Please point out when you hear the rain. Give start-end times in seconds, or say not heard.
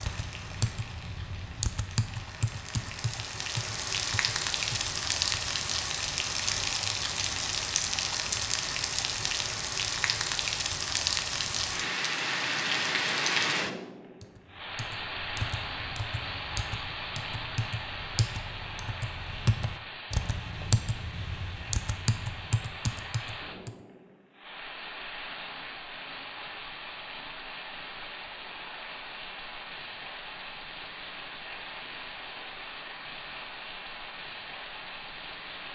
0.0-35.7.